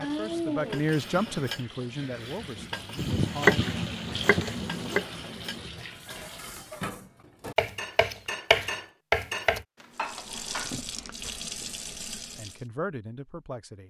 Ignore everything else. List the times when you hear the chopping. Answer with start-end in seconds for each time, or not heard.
3.0-5.0, 7.5-9.7.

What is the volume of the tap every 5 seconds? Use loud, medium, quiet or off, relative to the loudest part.
loud, medium, loud.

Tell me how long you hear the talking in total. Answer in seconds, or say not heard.
5 s.